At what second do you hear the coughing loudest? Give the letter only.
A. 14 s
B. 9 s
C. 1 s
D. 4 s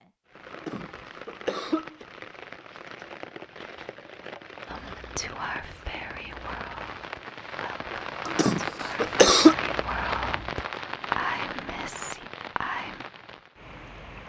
B.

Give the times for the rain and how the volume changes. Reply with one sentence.
You can hear the rain from 0.0 to 14.2 s, getting louder then quieter.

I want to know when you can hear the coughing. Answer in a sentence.
You can hear the coughing from 0.5 to 2.0 s and from 8.2 to 9.6 s.